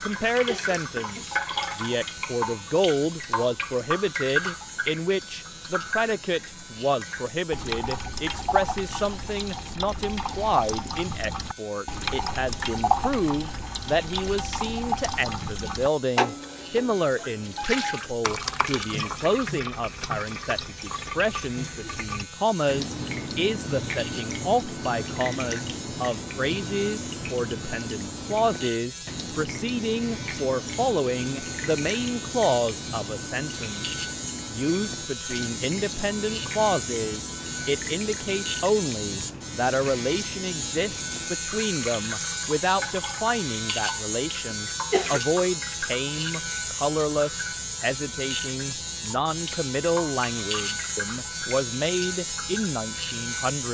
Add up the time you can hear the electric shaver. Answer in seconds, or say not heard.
54 s.